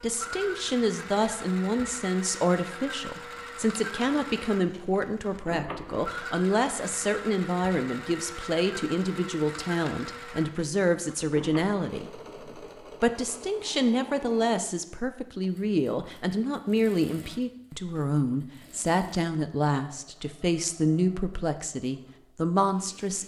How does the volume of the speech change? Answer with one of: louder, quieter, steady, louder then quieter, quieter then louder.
steady.